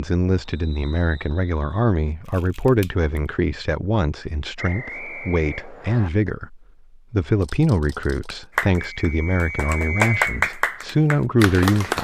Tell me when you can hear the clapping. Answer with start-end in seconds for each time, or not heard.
8.6-11.9.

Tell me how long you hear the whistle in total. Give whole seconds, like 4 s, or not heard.
4 s.